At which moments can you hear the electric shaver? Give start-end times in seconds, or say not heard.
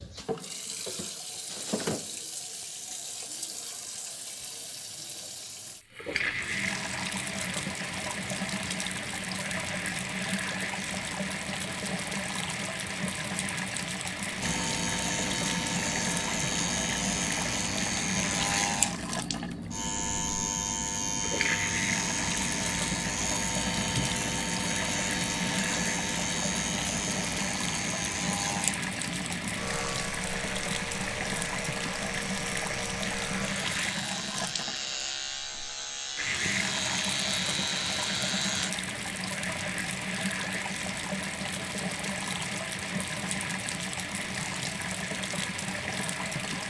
14.4-38.8.